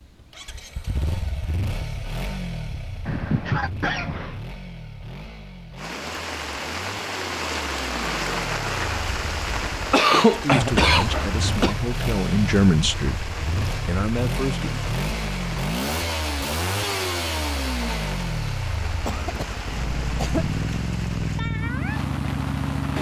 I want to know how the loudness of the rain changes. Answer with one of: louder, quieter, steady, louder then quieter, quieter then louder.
quieter.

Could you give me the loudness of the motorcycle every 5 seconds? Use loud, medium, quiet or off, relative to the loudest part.
medium, medium, loud, loud, loud.